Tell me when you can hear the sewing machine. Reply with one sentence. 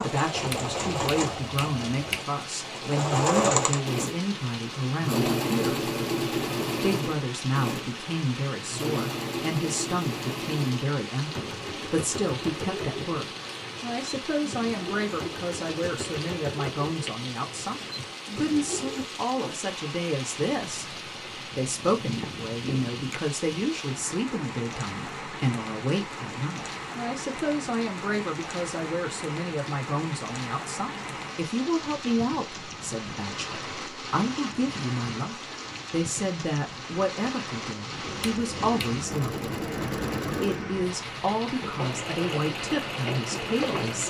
The sewing machine can be heard from 0.0 to 19.6 s and from 39.0 to 44.0 s.